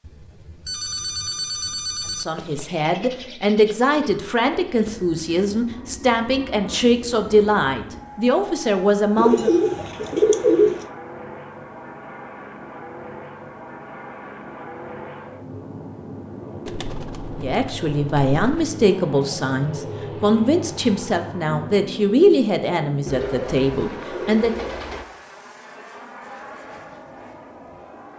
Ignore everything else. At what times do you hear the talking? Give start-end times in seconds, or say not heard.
2.1-9.5, 17.4-24.6.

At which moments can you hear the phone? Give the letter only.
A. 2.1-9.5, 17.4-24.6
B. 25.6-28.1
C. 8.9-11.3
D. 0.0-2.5
D.